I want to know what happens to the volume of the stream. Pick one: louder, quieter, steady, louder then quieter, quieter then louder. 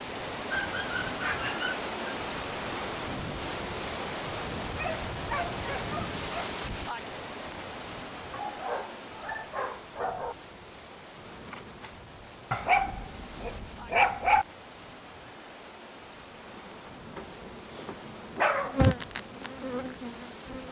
quieter.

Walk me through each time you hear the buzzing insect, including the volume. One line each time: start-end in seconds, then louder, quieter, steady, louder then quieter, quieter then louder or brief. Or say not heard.
11.2-14.1 brief
16.2-20.6 louder then quieter.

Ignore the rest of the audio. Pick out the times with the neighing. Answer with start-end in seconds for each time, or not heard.
not heard.